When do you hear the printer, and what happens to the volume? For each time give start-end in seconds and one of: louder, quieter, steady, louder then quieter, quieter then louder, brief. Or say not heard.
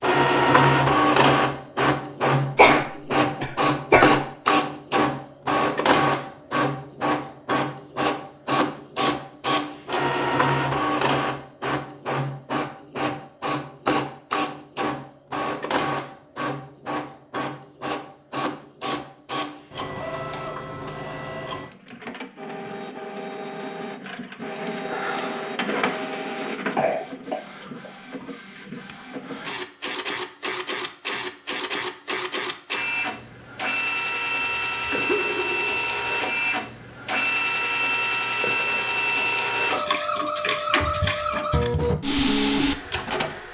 0.0-43.5 quieter then louder.